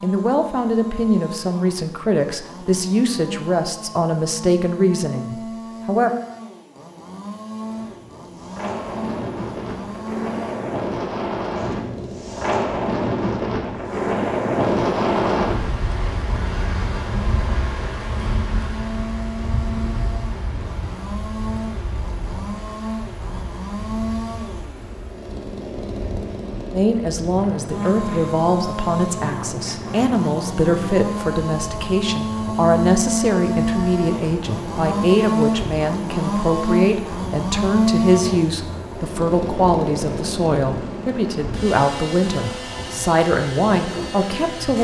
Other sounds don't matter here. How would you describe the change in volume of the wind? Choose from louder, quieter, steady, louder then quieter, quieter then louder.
quieter.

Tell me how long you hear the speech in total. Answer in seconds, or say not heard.
24 s.